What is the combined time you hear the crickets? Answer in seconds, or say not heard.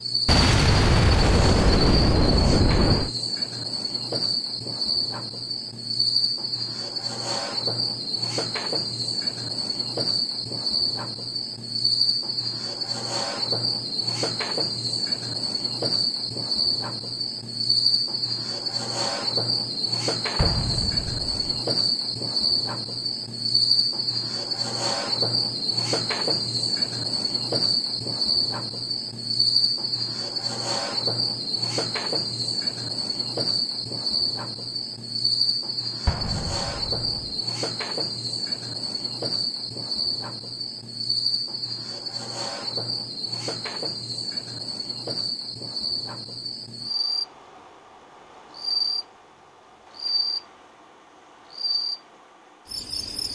53 s.